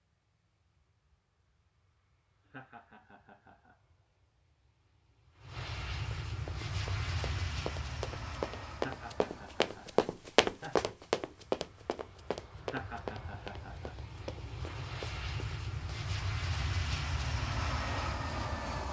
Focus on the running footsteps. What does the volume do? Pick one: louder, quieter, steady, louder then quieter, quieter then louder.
louder then quieter.